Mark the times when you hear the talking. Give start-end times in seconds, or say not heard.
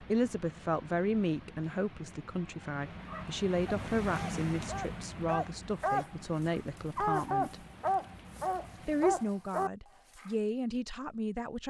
0.0-7.5, 8.8-11.6.